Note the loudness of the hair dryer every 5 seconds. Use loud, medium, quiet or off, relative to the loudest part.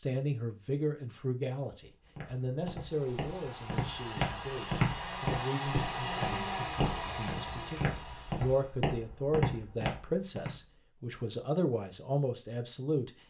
medium, loud, off.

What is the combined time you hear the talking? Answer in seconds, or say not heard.
13 s.